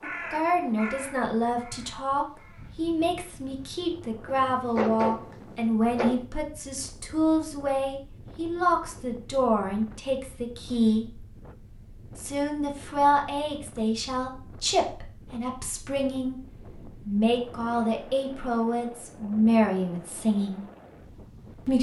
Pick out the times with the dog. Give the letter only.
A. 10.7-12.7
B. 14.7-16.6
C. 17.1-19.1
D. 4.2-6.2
D.